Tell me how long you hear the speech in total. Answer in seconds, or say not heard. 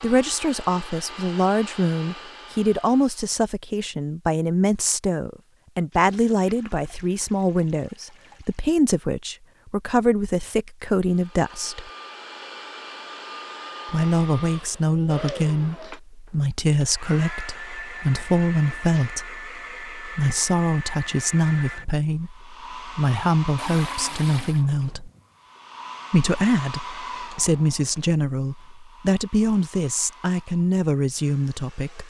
29 s.